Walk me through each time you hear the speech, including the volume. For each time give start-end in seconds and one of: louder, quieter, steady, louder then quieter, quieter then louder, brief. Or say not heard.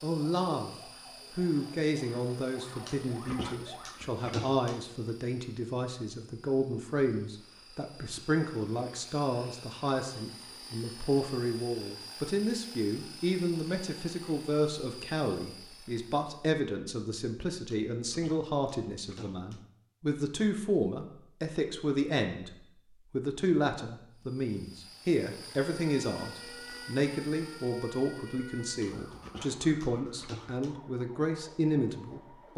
0.0-32.5 steady.